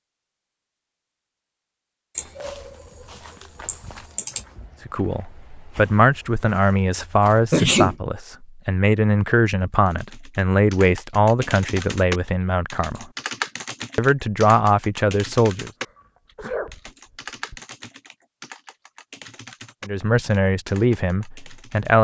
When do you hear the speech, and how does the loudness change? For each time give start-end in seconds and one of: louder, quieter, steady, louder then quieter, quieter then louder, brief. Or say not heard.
4.8-13.1 steady
13.9-15.7 brief
19.9-21.9 brief.